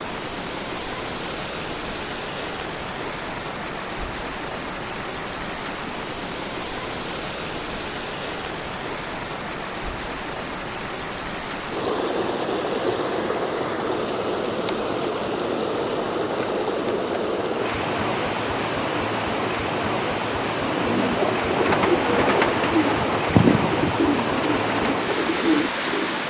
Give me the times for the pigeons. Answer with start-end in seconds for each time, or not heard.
20.7-26.2.